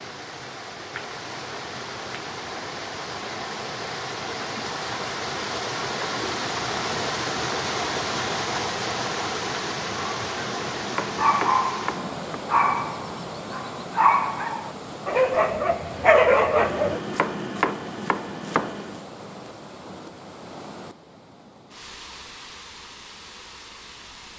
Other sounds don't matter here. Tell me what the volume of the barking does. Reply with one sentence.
The volume of the barking goes up.